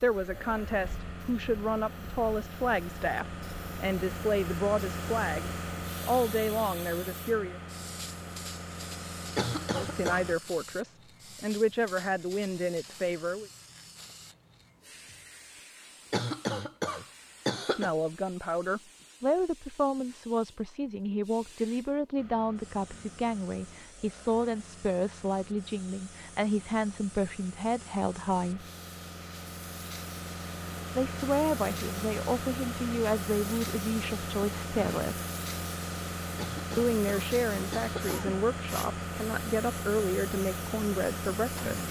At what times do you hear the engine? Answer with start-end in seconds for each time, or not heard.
0.0-10.3, 22.1-41.8.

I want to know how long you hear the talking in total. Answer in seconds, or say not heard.
32 s.